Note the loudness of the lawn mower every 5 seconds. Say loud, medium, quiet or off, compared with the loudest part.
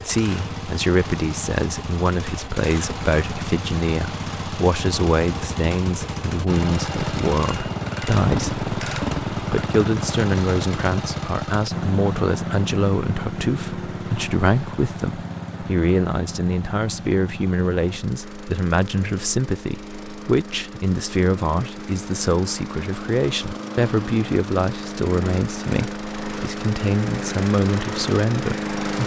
medium, loud, loud, medium, medium, loud.